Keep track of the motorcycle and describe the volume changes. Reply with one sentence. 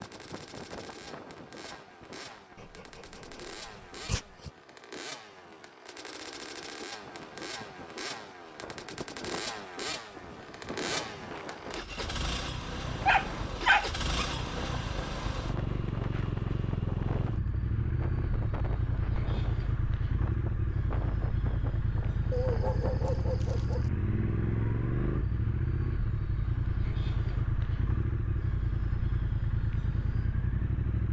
The loudness of the motorcycle goes up.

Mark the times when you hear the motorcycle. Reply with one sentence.
The motorcycle can be heard from 0.0 to 31.0 s.